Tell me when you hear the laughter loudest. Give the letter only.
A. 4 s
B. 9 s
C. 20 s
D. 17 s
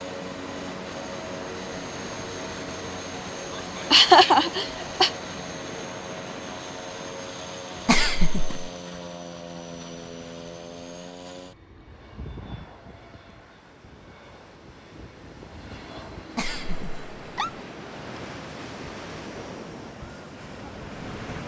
A.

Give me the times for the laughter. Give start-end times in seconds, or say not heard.
3.5-5.1, 7.8-8.6, 16.4-17.5.